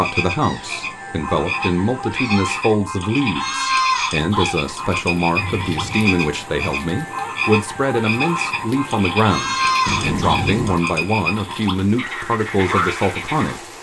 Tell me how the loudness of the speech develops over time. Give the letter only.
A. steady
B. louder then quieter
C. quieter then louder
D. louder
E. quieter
A.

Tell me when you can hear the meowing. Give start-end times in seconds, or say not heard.
0.4-2.6, 5.3-6.1, 9.8-10.8.